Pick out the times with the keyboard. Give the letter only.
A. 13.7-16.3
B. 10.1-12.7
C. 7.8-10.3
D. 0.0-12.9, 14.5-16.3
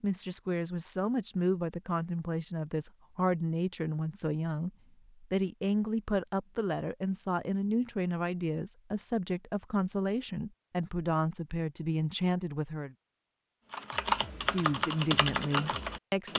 A.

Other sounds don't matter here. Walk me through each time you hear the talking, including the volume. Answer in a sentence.
You can hear the talking from 0.0 to 12.9 s, at a steady volume; and briefly from 14.5 to 16.3 s.